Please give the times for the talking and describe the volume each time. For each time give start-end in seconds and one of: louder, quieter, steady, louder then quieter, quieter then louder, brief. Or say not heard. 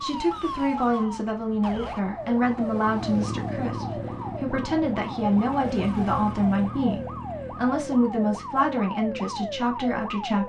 0.0-10.4 steady.